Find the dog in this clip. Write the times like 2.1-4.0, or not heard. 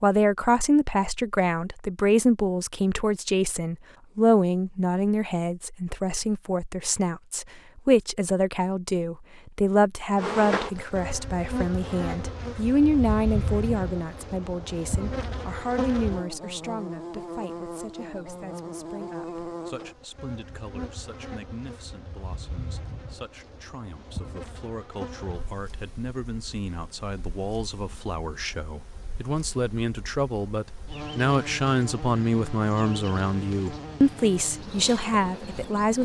not heard.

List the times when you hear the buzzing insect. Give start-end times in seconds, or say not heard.
10.2-36.0.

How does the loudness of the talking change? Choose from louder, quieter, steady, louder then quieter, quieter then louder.
quieter then louder.